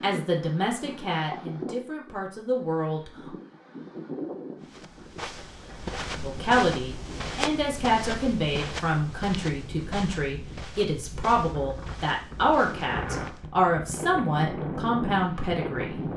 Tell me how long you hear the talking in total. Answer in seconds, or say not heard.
13 s.